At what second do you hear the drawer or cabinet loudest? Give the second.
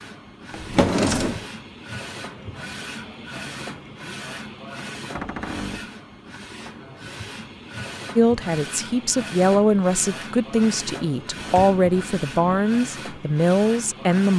1 s.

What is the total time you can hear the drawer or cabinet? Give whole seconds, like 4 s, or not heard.
3 s.